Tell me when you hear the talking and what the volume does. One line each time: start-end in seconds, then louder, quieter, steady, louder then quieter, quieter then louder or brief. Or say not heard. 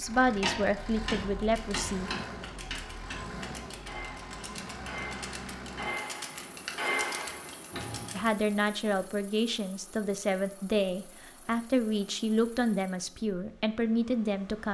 0.0-2.1 brief
8.1-14.6 steady.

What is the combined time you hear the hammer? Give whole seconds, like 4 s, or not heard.
8 s.